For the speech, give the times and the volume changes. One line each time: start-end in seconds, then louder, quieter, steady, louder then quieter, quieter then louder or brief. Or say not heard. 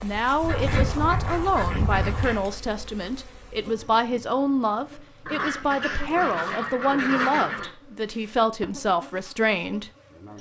0.0-9.9 steady.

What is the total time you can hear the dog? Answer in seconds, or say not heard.
not heard.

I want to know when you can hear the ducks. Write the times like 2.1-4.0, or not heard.
0.4-2.5, 5.2-7.7.